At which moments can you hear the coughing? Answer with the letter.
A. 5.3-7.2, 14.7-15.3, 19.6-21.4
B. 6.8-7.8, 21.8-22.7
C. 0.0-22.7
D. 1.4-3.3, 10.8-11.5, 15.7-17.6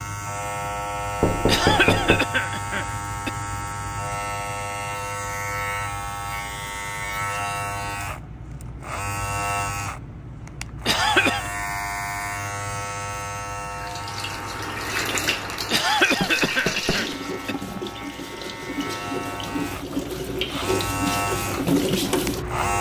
D.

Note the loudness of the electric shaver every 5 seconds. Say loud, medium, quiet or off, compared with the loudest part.
loud, loud, loud, medium, loud.